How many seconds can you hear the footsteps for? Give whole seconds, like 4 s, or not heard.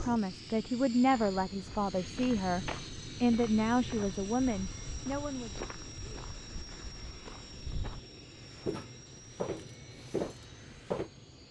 10 s.